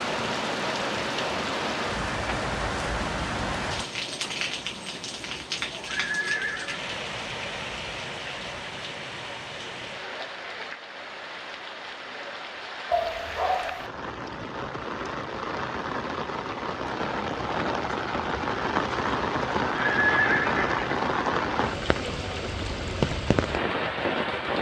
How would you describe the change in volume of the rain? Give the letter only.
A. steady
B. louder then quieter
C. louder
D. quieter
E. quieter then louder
E.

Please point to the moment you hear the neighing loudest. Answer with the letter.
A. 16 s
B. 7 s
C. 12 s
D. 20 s
D.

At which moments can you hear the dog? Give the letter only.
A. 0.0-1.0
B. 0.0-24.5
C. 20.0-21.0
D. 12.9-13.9
D.